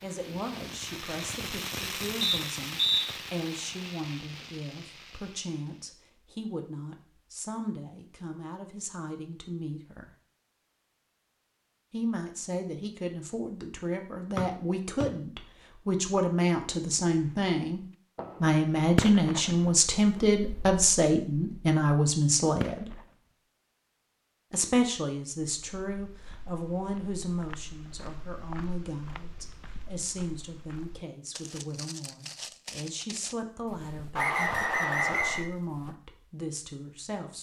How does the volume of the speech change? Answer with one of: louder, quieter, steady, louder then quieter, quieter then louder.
louder then quieter.